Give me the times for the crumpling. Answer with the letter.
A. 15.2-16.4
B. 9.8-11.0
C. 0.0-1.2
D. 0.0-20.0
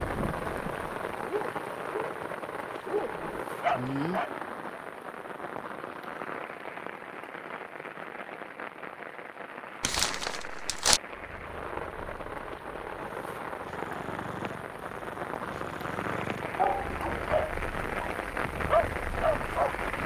B.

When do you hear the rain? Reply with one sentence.
You can hear the rain from 0.0 to 20.0 s.